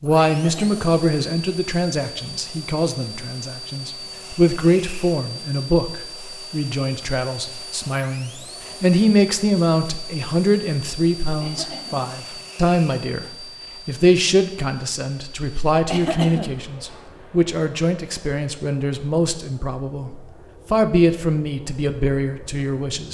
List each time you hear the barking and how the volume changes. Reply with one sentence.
You can't hear the barking here.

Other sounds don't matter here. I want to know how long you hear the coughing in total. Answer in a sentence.
The coughing can be heard for 2 seconds in total.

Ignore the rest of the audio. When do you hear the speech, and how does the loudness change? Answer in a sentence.
The speech can be heard from 0.0 to 23.1 s, at a steady volume.